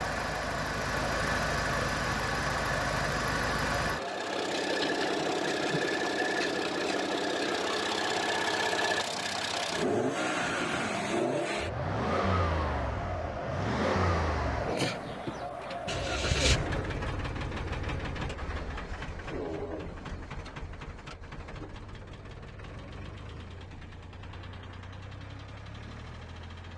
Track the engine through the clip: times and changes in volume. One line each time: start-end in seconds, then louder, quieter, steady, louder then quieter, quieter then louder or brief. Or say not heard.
0.0-26.7 quieter.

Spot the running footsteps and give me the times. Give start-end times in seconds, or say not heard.
not heard.